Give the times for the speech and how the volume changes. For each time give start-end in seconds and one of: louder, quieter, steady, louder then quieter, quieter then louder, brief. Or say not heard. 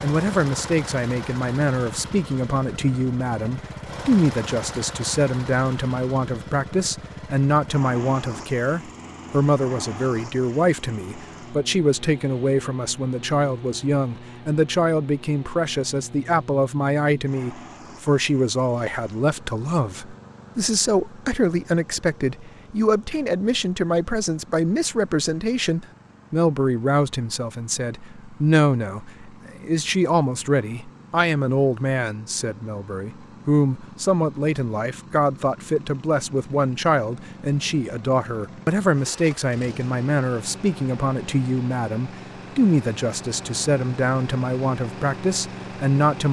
0.0-46.2 steady.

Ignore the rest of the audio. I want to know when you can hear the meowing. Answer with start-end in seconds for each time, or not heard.
not heard.